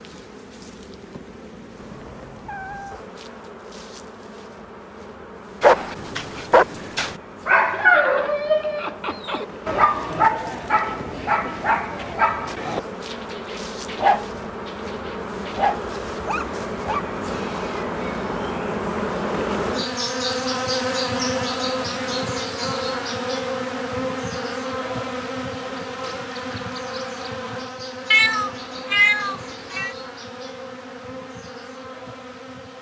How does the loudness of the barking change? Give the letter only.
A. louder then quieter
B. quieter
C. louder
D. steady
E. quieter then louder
B.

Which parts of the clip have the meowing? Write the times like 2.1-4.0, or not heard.
1.8-3.0, 28.1-29.9.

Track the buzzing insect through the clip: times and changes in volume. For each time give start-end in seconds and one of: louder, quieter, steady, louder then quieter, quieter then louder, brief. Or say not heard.
0.0-32.7 louder then quieter.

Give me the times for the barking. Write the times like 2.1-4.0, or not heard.
5.6-17.0.